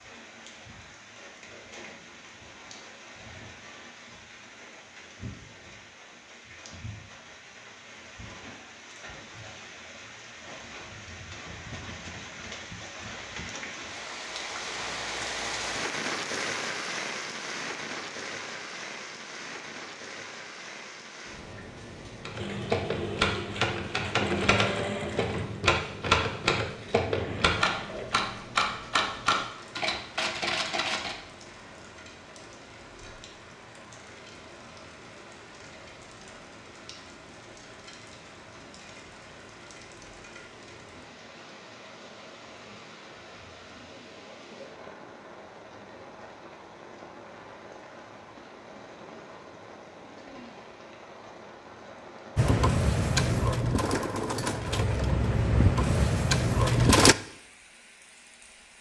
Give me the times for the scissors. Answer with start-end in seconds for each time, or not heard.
not heard.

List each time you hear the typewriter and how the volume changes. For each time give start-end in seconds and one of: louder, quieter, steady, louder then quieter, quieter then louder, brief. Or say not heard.
22.2-31.1 steady.